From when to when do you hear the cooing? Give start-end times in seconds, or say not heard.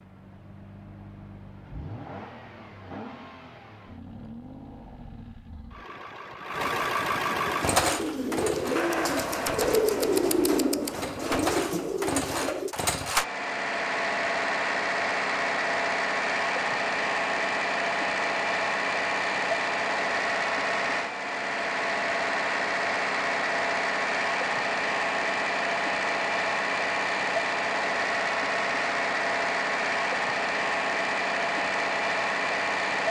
7.5-12.8.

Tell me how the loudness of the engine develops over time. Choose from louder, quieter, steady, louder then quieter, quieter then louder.
louder.